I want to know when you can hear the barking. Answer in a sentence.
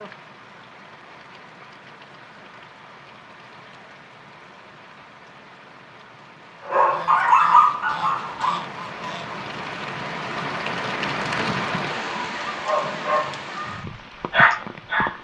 The barking can be heard from 6.7 to 8.7 s and from 12.4 to 15.1 s.